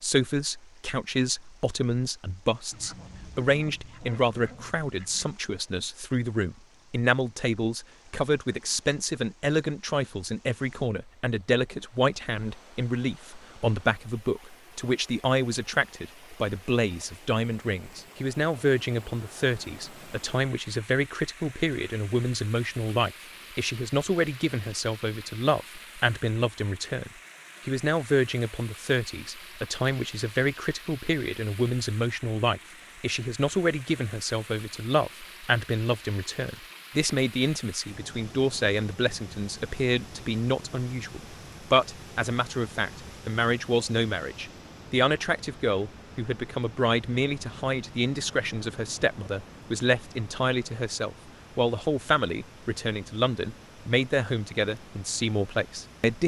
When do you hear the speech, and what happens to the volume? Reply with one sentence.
The speech can be heard from 0.0 to 56.2 s, at a steady volume.